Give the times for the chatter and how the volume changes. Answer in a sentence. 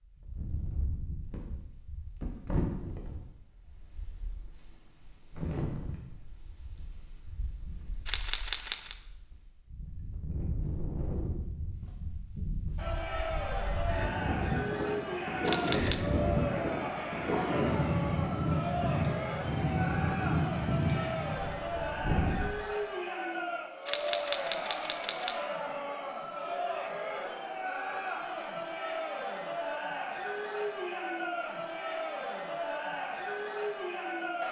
You can hear the chatter from 12.8 to 34.4 s, at a steady volume.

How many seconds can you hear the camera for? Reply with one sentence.
The camera can be heard for 3 seconds in total.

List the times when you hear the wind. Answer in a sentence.
You can hear the wind from 0.0 to 22.5 s.